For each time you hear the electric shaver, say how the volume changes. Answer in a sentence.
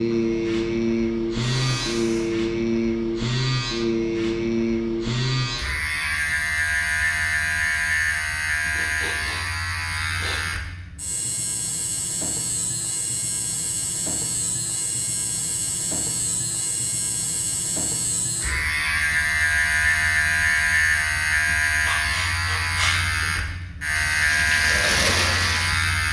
You can hear the electric shaver from 0.0 to 26.0 s, getting quieter then louder.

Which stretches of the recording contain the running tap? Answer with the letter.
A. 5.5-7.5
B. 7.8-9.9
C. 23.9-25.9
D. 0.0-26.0
C.